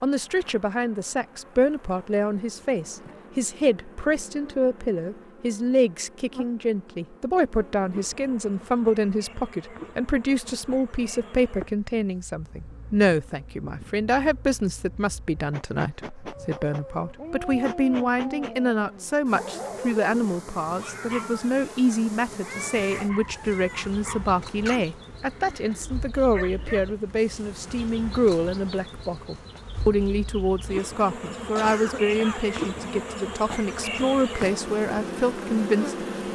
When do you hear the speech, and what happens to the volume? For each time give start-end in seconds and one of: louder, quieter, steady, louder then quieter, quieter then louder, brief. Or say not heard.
0.0-36.3 steady.